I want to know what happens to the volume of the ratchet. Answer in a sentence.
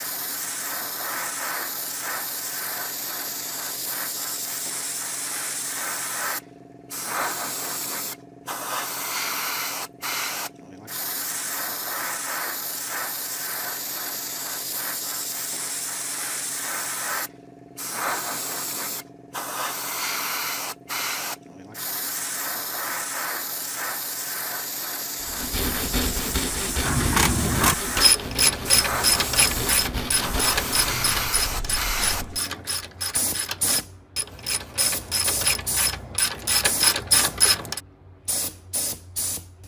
The loudness of the ratchet goes down, then up.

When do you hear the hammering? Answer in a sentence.
The hammering can't be heard in this clip.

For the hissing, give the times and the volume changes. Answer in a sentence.
You can hear the hissing from 0.0 to 39.6 s, at a steady volume.